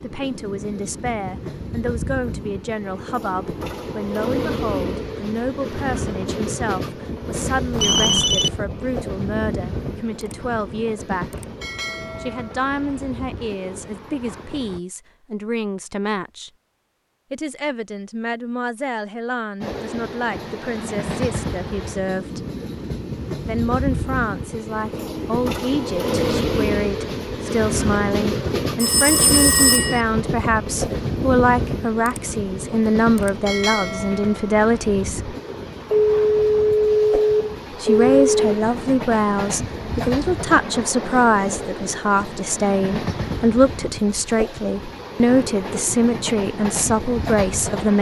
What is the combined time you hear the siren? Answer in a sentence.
The siren can't be heard in this clip.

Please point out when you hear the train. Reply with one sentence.
You can hear the train from 0.0 to 14.8 s and from 19.6 to 47.9 s.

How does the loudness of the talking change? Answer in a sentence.
The volume of the talking goes up.